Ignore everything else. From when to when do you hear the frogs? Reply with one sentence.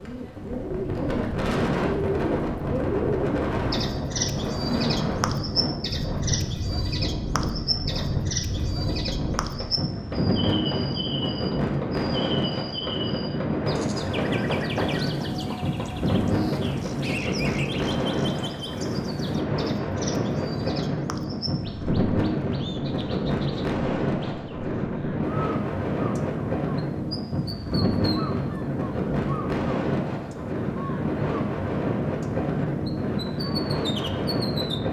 You can't hear the frogs here.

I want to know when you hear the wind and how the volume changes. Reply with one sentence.
You can hear the wind from 0.0 to 34.8 s, at a steady volume.